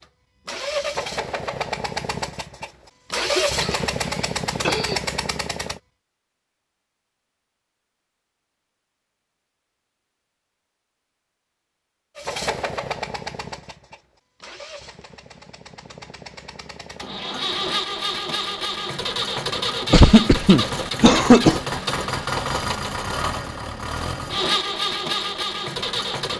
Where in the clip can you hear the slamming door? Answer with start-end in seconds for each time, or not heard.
not heard.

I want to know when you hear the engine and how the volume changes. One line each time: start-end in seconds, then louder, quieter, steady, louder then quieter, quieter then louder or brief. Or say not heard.
0.0-5.8 steady
12.2-26.3 louder.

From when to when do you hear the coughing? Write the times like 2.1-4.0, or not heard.
3.1-5.0, 19.9-21.6.